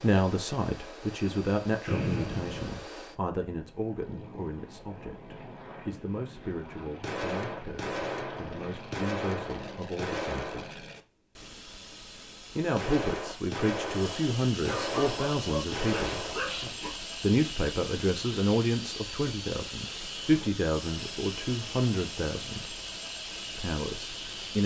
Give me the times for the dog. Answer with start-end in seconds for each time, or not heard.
14.7-16.9.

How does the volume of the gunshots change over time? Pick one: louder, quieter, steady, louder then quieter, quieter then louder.
steady.